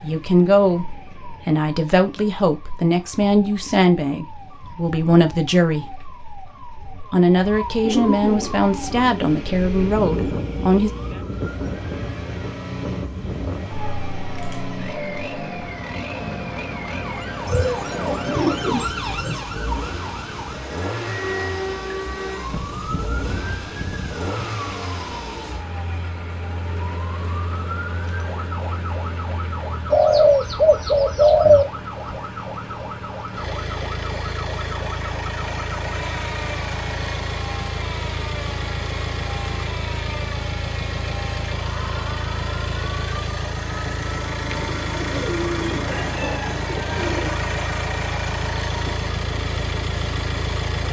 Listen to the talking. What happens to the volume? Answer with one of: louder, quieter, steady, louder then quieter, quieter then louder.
steady.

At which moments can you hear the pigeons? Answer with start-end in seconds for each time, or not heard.
7.8-10.4, 17.4-19.4, 29.9-31.6, 44.4-47.4.